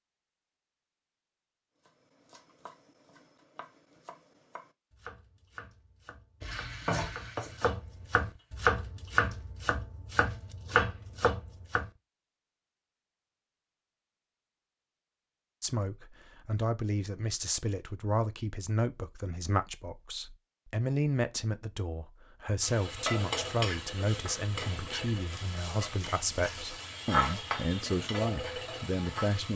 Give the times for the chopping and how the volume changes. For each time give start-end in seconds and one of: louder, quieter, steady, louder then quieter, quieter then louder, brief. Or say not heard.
1.9-11.9 louder.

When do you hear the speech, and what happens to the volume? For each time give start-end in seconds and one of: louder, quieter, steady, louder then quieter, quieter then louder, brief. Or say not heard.
15.6-29.5 steady.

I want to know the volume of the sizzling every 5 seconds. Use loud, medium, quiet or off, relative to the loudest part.
off, loud, off, off, loud, loud.